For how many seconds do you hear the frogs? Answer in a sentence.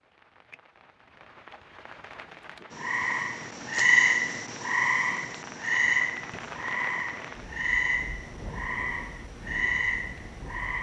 You can hear the frogs for 8 seconds altogether.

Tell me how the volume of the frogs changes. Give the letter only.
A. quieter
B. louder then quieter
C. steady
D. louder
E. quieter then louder
A.